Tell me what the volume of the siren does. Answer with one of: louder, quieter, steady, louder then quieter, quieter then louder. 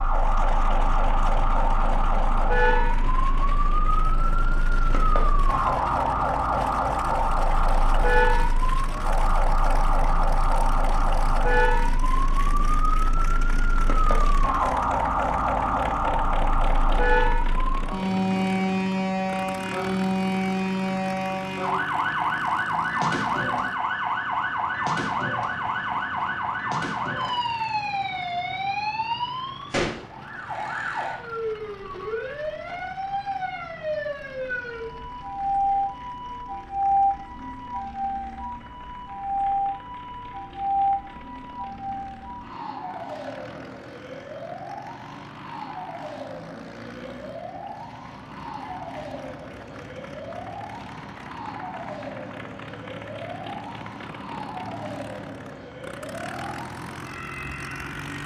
quieter.